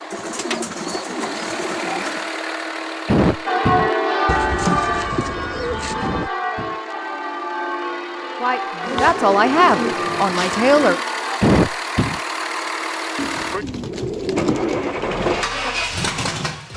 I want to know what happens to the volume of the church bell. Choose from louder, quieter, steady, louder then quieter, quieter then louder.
quieter.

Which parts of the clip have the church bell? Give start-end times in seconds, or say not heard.
3.5-11.4.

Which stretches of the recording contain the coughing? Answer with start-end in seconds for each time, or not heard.
3.0-3.9, 6.0-6.8, 11.4-12.2.